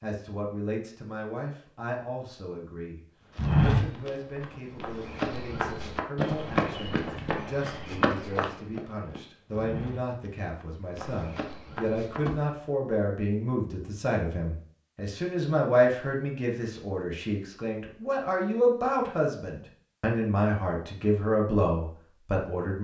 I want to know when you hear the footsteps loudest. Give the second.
4 s.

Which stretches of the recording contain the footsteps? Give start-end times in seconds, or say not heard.
3.4-12.4.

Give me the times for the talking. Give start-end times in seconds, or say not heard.
0.0-22.7.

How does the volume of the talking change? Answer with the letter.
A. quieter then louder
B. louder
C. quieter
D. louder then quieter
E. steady
B.